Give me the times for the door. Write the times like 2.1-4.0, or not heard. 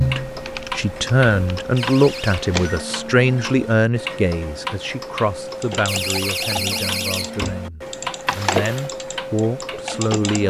1.8-2.4, 5.8-7.6.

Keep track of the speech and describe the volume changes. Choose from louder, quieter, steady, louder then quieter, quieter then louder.
quieter then louder.